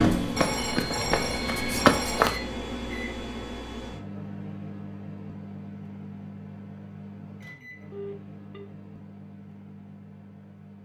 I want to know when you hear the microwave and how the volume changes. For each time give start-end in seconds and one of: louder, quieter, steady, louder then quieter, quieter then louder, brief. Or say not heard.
0.0-10.7 quieter.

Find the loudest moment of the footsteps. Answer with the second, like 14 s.
2 s.